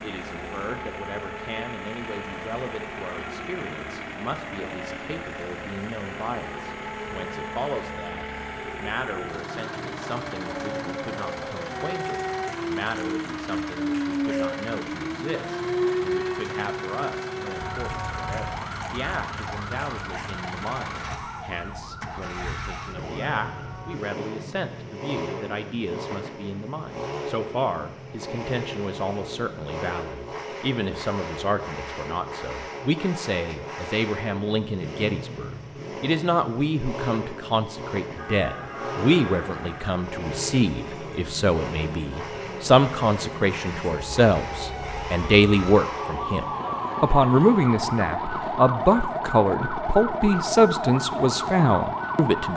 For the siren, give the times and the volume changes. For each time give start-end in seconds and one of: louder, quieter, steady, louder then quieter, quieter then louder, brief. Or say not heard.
0.2-24.0 louder then quieter
38.1-52.5 louder.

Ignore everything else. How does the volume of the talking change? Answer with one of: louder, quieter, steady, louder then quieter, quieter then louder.
louder.